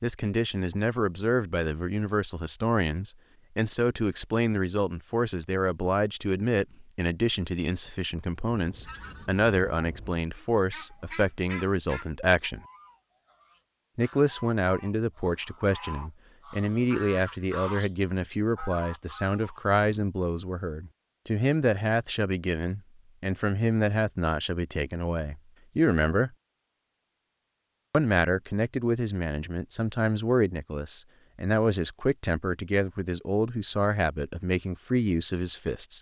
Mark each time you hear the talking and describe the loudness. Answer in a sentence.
You can hear the talking from 0.0 to 12.6 s, at a steady volume; from 13.9 to 26.3 s, at a steady volume; and from 27.9 to 35.9 s, at a steady volume.